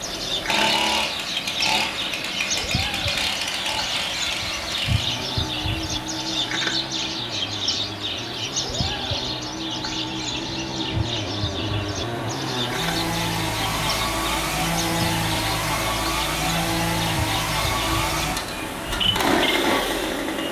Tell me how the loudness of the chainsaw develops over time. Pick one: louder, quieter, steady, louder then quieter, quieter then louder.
quieter then louder.